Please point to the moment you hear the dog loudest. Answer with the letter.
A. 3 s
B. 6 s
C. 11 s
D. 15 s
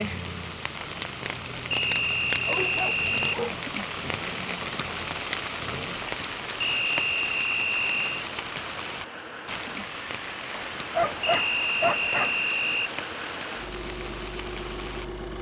C.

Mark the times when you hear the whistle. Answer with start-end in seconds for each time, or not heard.
1.7-3.4, 6.6-8.2, 11.2-12.9.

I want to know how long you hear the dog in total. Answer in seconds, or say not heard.
3 s.